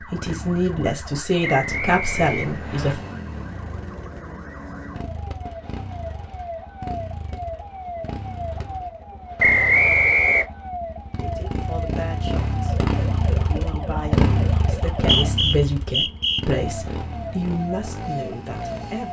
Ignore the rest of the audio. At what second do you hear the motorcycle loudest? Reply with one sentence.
The loudest moment of the motorcycle is at 15 seconds.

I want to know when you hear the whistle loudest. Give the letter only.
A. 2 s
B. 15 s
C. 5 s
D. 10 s
D.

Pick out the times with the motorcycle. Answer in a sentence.
The motorcycle can be heard from 0.0 to 19.0 s.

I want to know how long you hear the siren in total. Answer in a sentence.
The siren can be heard for 19 seconds in total.